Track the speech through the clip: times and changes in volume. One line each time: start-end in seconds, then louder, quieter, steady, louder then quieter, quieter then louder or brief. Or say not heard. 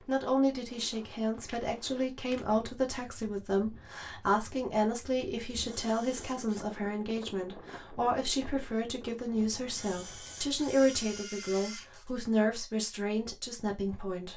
0.1-14.3 steady.